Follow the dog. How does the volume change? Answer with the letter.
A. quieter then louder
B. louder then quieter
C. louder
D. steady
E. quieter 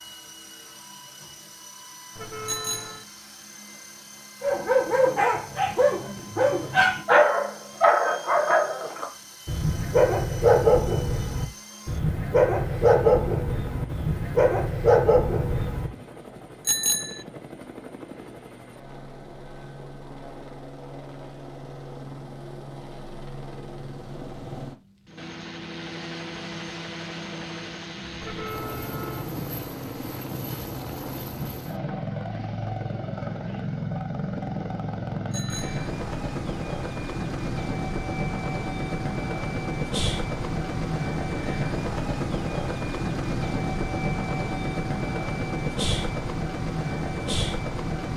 D.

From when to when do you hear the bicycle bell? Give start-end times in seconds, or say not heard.
2.5-3.0, 16.6-17.2, 35.3-35.9.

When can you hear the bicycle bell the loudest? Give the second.
17 s.